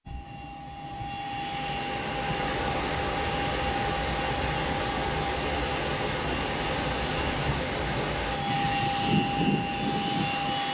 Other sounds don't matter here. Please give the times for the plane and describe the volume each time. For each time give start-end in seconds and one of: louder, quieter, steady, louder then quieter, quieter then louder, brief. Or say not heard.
0.1-10.6 louder.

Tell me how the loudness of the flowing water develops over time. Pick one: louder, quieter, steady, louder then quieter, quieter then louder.
quieter.